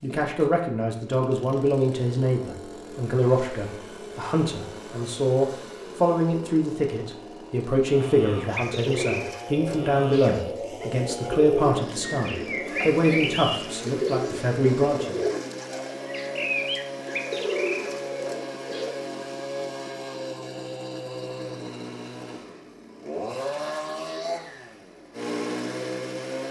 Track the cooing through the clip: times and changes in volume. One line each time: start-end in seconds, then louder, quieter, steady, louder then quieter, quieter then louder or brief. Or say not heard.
8.4-19.0 steady.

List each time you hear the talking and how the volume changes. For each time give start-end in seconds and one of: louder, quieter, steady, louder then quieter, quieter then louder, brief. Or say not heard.
0.0-15.2 steady.